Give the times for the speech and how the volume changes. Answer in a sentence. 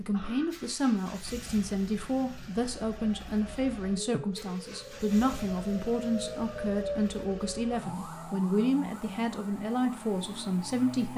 You can hear the speech from 0.0 to 11.1 s, at a steady volume.